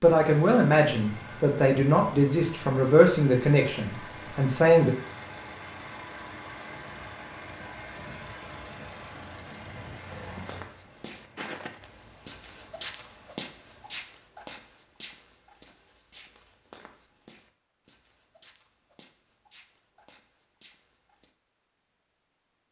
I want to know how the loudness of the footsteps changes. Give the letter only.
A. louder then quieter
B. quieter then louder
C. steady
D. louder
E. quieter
E.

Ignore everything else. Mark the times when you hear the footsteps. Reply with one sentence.
You can hear the footsteps from 10.1 to 21.3 s.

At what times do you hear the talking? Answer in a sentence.
You can hear the talking from 0.0 to 5.0 s.